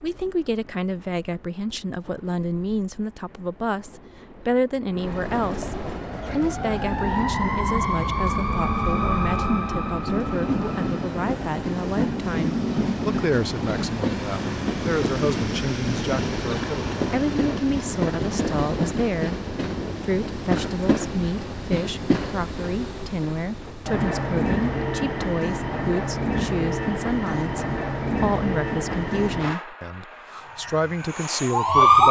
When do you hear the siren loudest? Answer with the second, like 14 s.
32 s.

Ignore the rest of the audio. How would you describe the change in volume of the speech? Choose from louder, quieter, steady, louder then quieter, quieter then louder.
steady.